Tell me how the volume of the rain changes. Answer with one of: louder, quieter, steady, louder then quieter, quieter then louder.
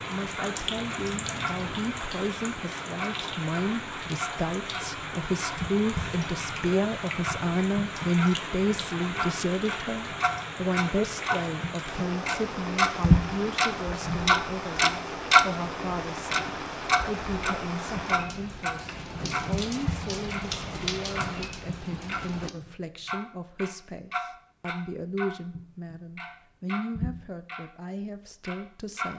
steady.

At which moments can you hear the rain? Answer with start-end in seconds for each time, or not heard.
0.0-22.5.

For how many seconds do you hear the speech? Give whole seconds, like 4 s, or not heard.
29 s.